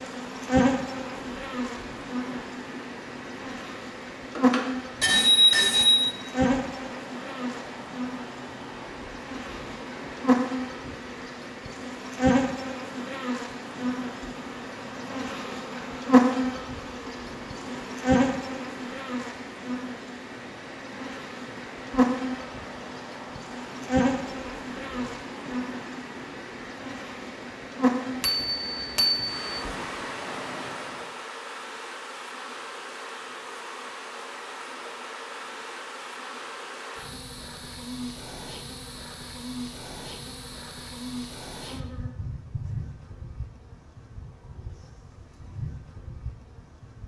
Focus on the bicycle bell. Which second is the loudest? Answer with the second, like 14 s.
5 s.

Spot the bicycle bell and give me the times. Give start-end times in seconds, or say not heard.
4.3-6.2, 28.2-29.6.